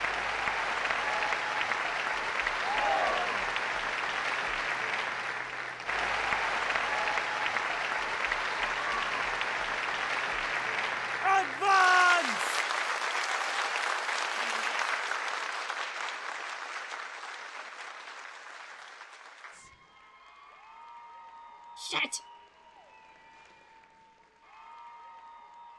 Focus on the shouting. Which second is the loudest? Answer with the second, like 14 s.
12 s.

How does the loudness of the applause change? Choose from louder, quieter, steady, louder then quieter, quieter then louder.
quieter.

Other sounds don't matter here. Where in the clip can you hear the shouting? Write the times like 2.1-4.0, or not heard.
2.6-3.5, 11.2-12.6, 21.8-22.2.